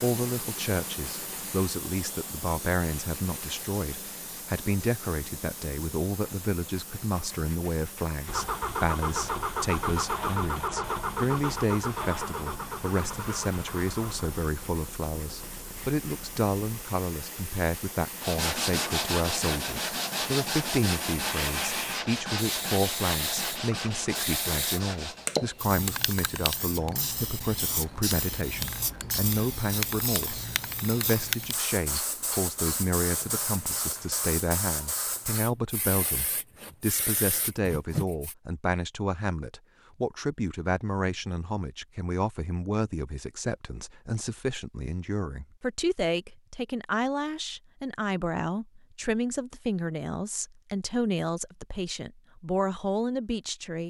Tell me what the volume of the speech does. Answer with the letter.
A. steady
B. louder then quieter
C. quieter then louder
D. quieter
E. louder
A.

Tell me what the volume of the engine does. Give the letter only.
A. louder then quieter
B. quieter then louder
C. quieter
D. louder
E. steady
C.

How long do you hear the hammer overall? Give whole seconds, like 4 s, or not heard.
not heard.